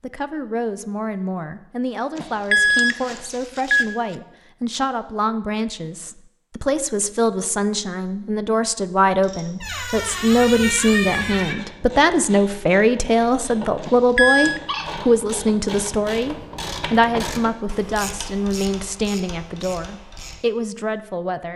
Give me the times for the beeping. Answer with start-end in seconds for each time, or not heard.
2.1-3.9, 13.8-14.6.